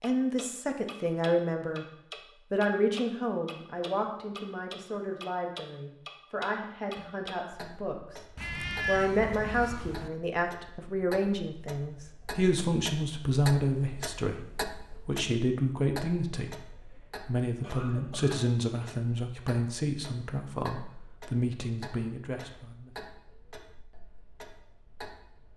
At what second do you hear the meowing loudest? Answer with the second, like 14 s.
9 s.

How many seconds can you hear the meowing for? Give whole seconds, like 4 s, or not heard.
2 s.